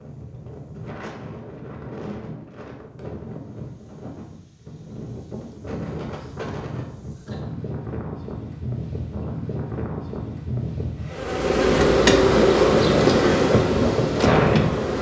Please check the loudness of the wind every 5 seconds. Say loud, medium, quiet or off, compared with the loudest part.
quiet, medium, loud.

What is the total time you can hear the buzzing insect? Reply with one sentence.
The buzzing insect can be heard for 4 seconds in total.